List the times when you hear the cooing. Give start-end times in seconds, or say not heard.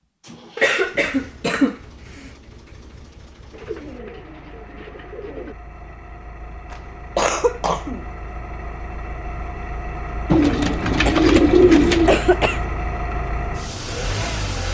3.5-5.5, 10.3-12.2.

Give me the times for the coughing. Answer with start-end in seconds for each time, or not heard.
0.6-2.3, 6.7-8.1, 10.9-12.7.